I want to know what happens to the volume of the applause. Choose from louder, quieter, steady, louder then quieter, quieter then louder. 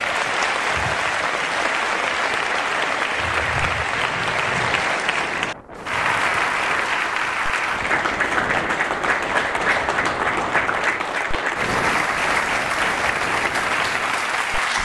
steady.